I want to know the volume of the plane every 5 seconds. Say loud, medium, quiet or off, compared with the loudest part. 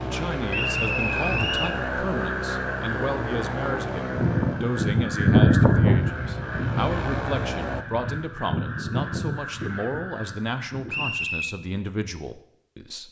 loud, loud, off.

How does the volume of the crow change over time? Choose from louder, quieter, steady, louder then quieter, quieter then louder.
louder then quieter.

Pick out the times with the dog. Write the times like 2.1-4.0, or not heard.
not heard.